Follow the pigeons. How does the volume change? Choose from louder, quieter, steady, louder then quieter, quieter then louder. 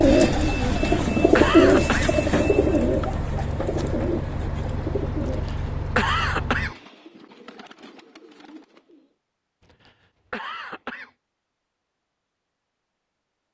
quieter.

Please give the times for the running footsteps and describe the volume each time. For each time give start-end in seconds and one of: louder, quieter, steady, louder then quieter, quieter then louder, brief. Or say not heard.
not heard.